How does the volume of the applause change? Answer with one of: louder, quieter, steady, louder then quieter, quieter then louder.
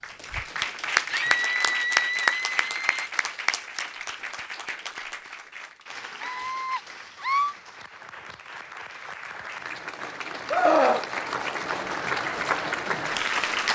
quieter then louder.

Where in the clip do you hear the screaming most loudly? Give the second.
11 s.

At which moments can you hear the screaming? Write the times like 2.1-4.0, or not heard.
1.1-3.0, 6.2-7.5, 10.5-11.1.